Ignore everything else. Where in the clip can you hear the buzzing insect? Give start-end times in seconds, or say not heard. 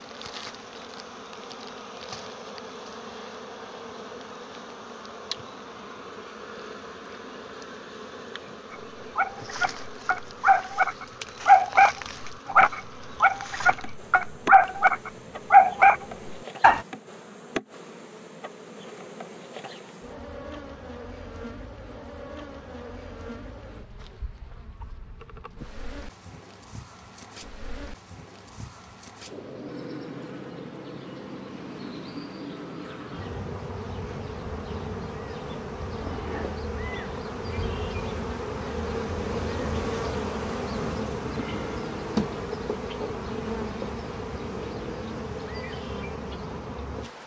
0.0-47.2.